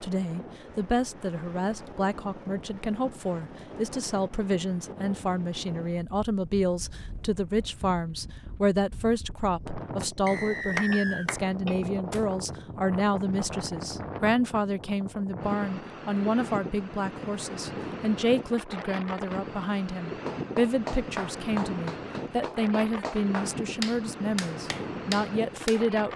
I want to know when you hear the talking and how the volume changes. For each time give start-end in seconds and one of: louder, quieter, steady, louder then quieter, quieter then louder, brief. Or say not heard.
0.0-26.1 steady.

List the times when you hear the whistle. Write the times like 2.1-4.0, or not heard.
10.2-11.3.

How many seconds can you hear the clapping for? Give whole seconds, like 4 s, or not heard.
7 s.